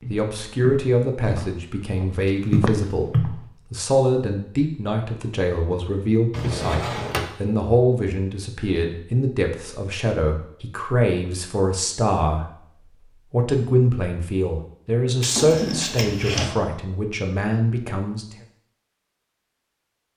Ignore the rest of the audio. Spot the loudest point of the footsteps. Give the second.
3 s.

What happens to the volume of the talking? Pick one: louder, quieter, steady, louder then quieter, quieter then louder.
steady.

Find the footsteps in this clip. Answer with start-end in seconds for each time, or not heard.
0.0-3.4.